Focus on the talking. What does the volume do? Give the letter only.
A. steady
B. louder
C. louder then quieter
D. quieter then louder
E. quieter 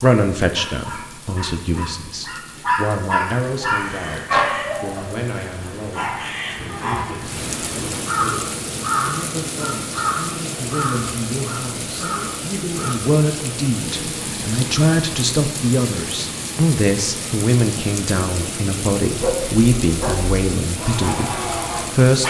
D.